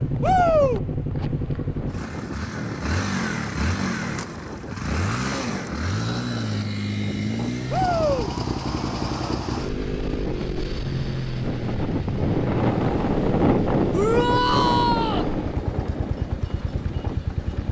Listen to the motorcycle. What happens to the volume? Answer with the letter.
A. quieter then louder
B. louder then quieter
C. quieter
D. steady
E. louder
D.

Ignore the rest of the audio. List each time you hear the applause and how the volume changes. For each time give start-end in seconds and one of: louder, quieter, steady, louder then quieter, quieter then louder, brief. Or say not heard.
not heard.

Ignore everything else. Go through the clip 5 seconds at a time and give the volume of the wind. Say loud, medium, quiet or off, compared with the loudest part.
medium, medium, loud, medium.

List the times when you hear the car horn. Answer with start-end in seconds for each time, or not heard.
not heard.